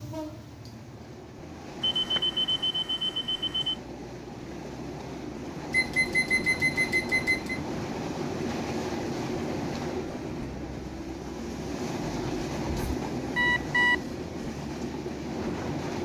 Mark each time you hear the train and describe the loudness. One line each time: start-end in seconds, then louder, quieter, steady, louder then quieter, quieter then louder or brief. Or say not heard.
0.0-15.9 louder.